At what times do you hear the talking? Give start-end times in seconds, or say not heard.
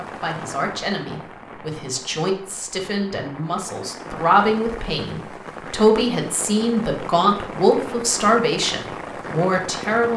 0.0-10.1.